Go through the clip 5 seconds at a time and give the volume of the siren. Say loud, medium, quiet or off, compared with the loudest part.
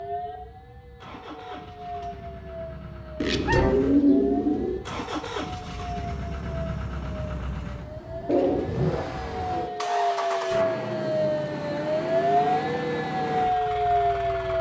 quiet, medium, loud.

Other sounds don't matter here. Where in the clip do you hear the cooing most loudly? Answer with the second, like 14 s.
4 s.